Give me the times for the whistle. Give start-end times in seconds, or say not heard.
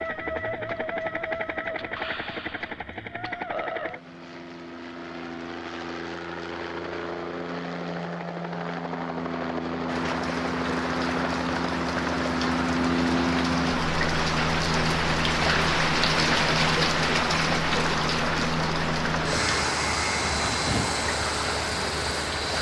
not heard.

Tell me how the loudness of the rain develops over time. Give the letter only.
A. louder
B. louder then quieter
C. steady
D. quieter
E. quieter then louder
B.